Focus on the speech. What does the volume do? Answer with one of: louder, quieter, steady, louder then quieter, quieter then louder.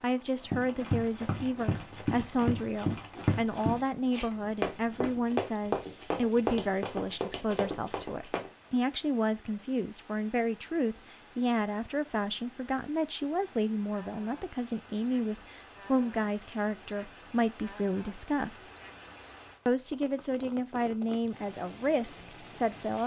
steady.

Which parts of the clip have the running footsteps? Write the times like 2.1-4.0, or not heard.
0.5-8.5.